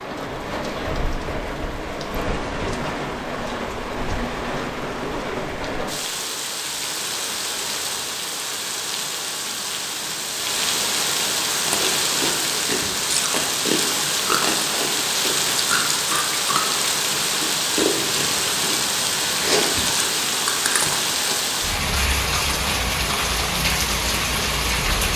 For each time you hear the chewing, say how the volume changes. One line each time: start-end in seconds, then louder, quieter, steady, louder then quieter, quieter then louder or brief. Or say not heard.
11.5-21.2 steady.